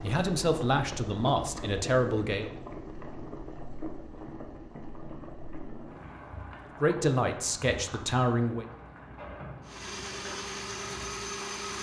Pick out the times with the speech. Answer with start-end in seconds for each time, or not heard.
0.0-2.5, 6.8-8.7.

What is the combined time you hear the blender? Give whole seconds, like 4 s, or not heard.
2 s.